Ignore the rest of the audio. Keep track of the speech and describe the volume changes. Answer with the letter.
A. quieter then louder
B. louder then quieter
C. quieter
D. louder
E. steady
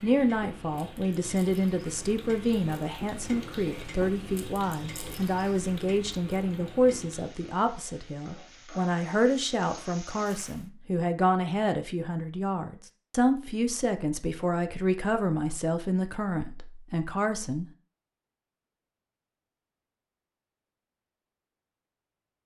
E.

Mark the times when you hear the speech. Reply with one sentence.
You can hear the speech from 0.0 to 17.6 s.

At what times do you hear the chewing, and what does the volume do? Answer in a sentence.
The chewing can't be heard in this clip.